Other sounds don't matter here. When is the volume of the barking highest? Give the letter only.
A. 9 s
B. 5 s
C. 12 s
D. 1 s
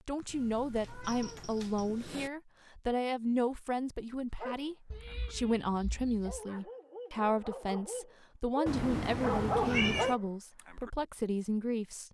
A.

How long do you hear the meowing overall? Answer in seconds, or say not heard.
5 s.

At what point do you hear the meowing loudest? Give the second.
10 s.